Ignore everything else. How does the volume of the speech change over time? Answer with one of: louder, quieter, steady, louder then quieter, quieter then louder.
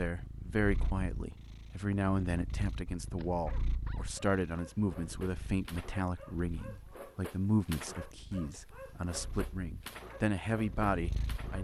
steady.